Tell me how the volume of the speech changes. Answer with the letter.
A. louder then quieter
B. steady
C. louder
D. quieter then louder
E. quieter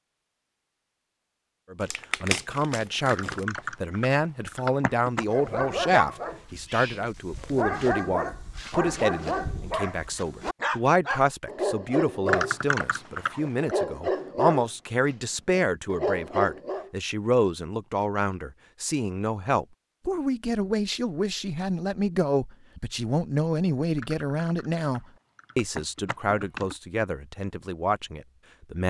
B.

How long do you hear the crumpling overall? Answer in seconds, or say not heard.
2 s.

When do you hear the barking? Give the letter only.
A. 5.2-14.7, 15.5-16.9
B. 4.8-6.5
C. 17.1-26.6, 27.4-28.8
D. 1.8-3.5
A.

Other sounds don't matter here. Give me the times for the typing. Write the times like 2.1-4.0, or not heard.
3.0-5.2, 12.2-13.7, 23.9-26.8.